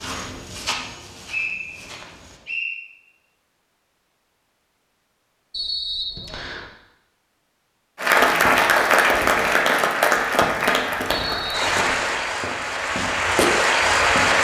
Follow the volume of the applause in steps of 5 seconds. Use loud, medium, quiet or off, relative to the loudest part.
off, loud, loud.